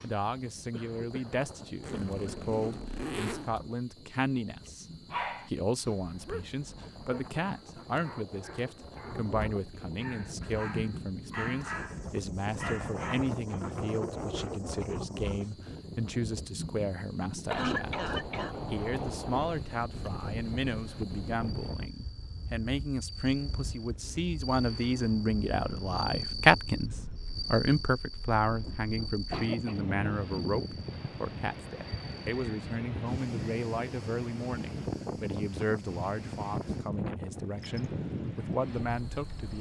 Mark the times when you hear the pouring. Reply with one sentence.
The pouring can't be heard in this clip.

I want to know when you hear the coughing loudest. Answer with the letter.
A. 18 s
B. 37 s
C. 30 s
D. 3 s
A.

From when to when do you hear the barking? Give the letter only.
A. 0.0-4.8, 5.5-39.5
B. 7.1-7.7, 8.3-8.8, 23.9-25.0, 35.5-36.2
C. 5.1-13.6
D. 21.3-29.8
C.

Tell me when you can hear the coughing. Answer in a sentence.
The coughing can be heard from 0.7 to 1.3 s, from 1.9 to 2.4 s, from 17.5 to 18.6 s and from 29.1 to 29.8 s.